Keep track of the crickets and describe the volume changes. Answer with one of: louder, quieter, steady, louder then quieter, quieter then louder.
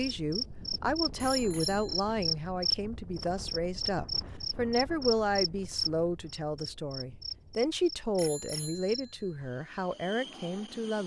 quieter.